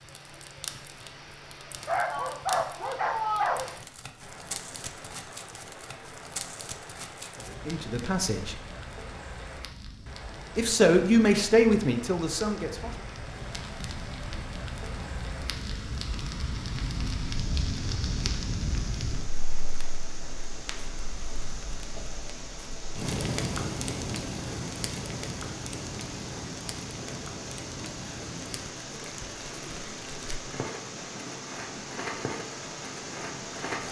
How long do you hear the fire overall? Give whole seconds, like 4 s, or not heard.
34 s.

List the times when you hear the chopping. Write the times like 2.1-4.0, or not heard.
not heard.